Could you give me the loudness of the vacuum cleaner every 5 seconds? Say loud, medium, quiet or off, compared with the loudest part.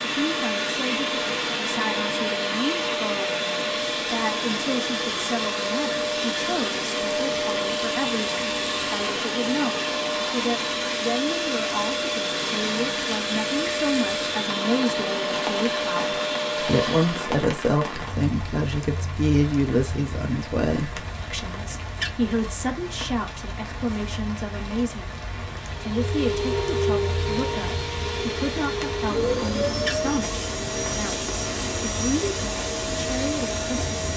loud, loud, loud, loud, off, loud, loud.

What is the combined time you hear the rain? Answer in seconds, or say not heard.
34 s.